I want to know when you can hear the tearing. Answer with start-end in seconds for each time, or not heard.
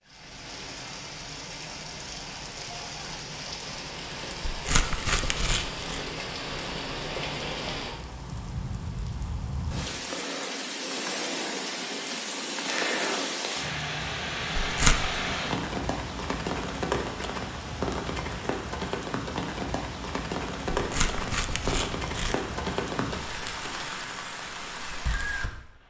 4.5-6.0, 14.6-15.1, 20.8-22.4.